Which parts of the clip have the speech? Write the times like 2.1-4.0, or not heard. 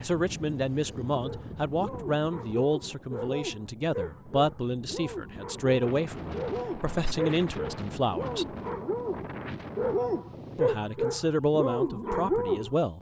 0.0-8.4, 10.6-12.9.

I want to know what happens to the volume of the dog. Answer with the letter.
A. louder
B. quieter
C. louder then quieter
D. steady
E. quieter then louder
A.